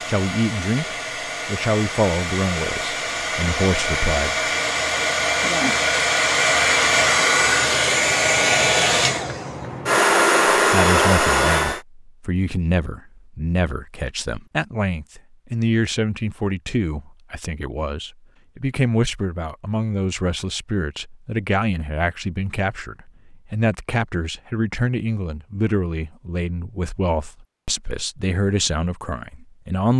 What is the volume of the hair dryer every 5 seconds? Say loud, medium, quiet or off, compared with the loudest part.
medium, loud, loud, off, off, off.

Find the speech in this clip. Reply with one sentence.
The speech can be heard from 0.1 to 4.3 s and from 10.6 to 29.9 s.